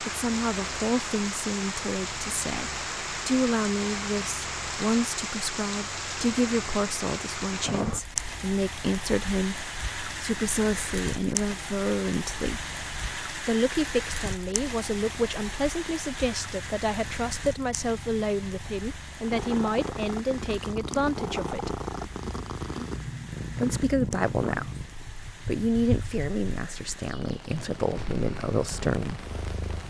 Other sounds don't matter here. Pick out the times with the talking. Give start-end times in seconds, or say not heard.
0.0-12.7, 13.4-21.8, 23.6-24.8, 25.4-29.2.